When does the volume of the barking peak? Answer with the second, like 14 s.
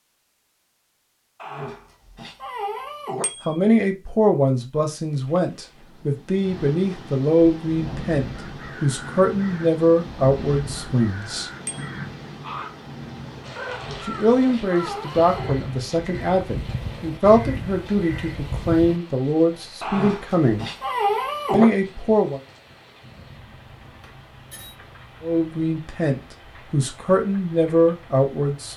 21 s.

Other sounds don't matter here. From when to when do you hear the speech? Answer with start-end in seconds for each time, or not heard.
3.5-11.5, 14.0-20.6, 21.5-22.4, 25.2-28.7.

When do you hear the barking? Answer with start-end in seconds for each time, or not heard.
1.4-3.2, 13.7-15.6, 19.8-21.6.